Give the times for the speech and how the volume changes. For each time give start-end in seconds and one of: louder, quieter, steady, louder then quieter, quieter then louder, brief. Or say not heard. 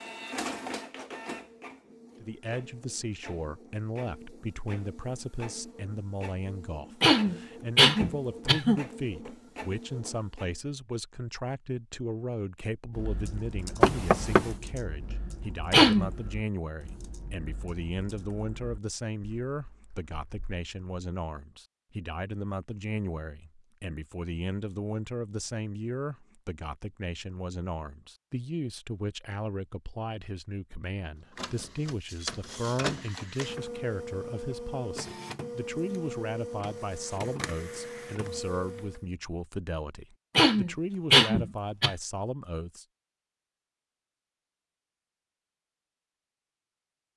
2.2-42.9 steady.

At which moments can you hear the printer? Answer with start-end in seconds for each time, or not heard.
0.0-10.5, 31.4-39.0.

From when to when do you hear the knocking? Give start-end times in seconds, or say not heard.
13.8-14.5.